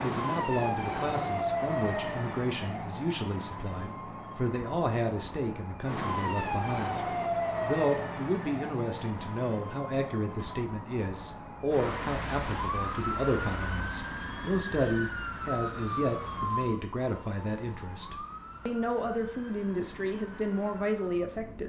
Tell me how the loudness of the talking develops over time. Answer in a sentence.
The volume of the talking stays about the same.